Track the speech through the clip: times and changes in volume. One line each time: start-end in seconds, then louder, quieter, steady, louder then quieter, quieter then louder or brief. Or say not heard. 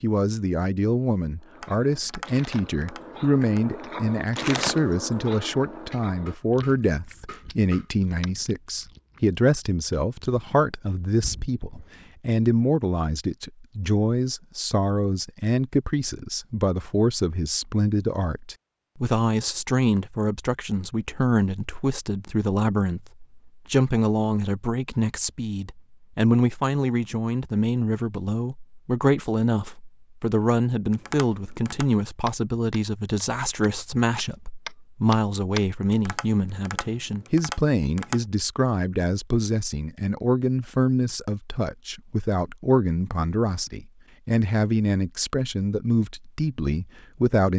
0.0-47.5 steady.